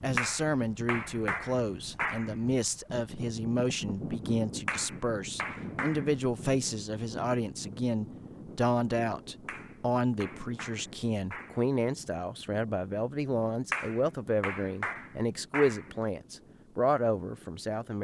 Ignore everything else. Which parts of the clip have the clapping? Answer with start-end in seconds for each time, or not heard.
0.1-2.4, 4.7-6.1, 9.4-11.7, 13.7-15.9.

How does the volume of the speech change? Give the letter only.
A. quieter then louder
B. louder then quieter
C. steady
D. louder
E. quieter
C.